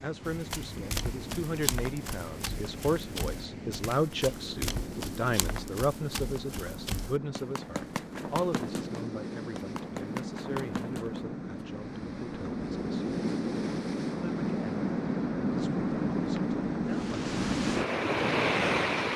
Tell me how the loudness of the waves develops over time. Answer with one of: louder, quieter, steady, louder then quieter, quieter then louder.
louder.